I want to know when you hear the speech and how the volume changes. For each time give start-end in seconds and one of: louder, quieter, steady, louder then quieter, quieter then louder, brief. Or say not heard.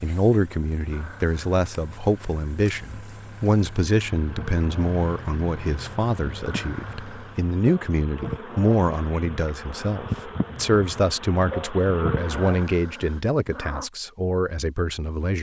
0.0-15.3 steady.